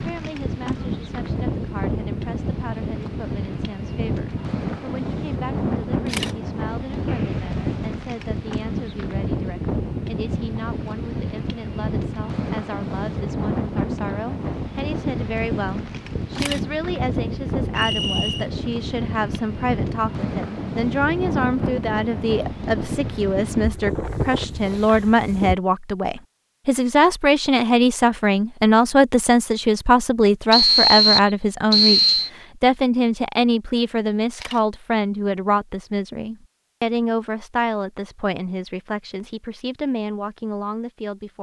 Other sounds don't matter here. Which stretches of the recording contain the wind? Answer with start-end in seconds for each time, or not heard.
0.0-25.6.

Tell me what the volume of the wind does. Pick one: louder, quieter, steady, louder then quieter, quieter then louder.
steady.